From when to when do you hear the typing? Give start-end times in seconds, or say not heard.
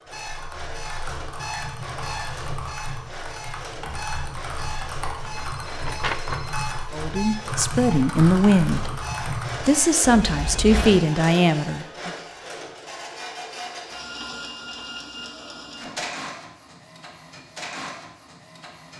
0.0-9.9.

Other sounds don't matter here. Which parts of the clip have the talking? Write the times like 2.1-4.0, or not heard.
6.9-8.8, 9.6-12.1.